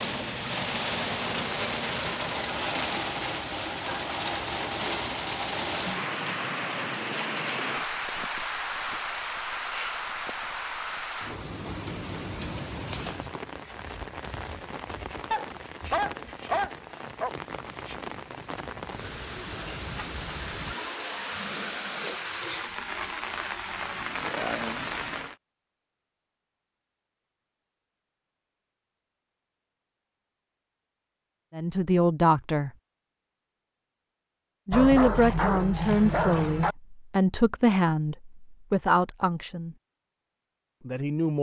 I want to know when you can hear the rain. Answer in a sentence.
The rain can be heard from 0.0 to 25.4 s.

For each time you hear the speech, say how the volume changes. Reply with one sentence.
You can hear the speech briefly from 31.6 to 32.7 s; from 34.6 to 39.8 s, at a steady volume; and briefly from 40.8 to 41.3 s.